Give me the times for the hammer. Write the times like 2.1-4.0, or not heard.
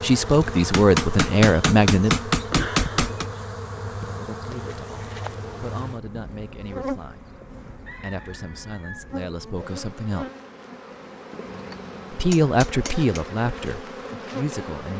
0.7-3.3, 11.4-13.2.